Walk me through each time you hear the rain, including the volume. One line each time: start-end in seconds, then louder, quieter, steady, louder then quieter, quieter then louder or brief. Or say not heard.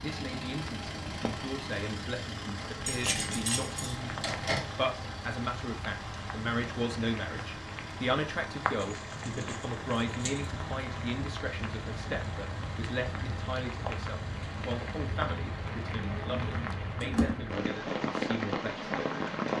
0.0-19.5 louder.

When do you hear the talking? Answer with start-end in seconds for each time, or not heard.
0.0-18.9.